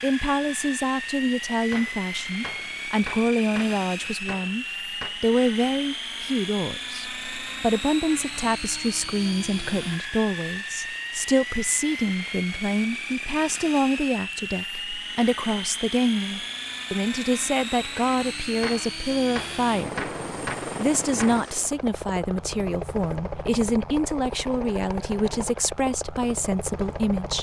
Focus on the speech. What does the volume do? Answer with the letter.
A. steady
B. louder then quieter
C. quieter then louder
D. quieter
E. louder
A.